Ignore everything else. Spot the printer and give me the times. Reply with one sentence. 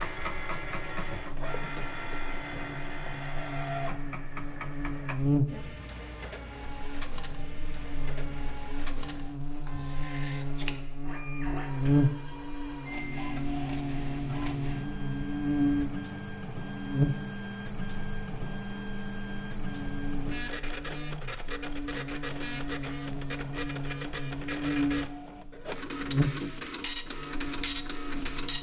You can hear the printer from 0.0 to 28.5 s.